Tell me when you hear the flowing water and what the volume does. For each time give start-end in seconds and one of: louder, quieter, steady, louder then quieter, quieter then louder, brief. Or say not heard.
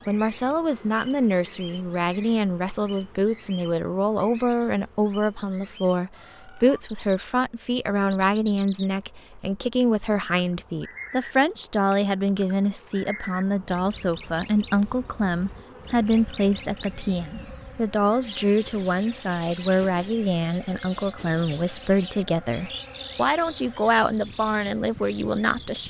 not heard.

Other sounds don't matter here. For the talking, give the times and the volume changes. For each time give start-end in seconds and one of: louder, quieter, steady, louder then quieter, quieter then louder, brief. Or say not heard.
0.1-25.8 steady.